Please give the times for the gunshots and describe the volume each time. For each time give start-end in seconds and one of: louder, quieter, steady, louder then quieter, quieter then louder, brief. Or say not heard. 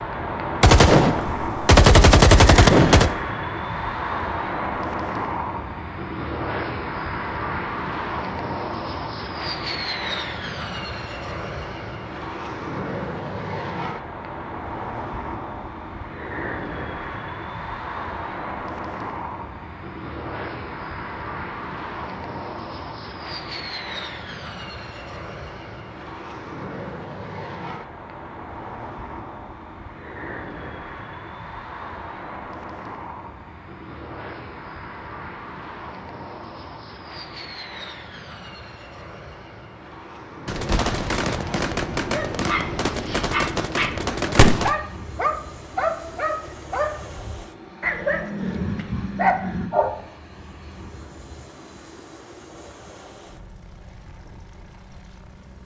0.6-3.1 brief
40.5-44.7 steady.